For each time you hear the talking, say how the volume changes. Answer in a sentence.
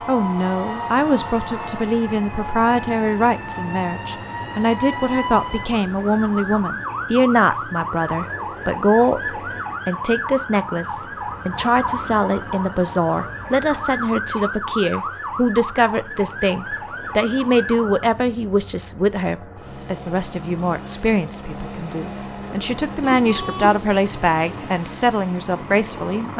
The talking can be heard from 0.1 to 26.3 s, at a steady volume.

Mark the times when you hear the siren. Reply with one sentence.
The siren can be heard from 0.0 to 18.1 s.